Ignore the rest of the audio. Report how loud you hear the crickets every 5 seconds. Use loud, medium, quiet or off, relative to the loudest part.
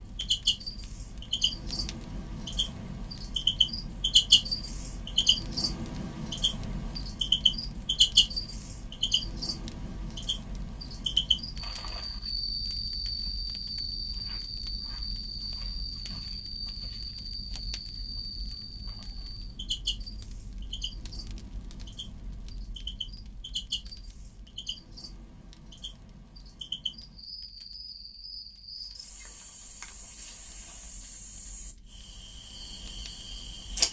loud, loud, medium, medium, quiet, quiet, medium.